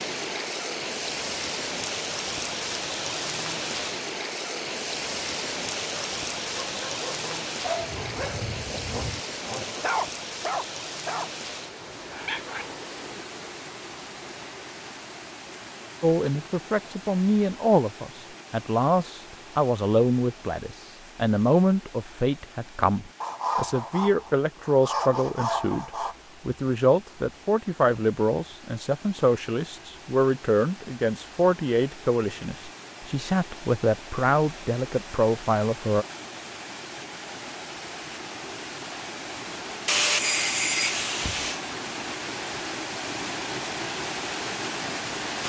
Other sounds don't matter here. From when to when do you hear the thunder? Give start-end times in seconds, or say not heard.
not heard.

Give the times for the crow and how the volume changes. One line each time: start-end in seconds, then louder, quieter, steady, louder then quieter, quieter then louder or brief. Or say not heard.
not heard.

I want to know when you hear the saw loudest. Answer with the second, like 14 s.
40 s.